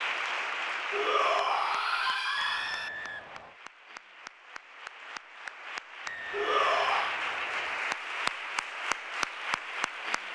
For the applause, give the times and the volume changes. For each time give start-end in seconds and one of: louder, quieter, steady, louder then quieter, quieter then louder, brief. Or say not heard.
0.0-10.2 quieter then louder.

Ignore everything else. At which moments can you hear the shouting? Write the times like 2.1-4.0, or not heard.
0.9-2.9, 6.3-7.2.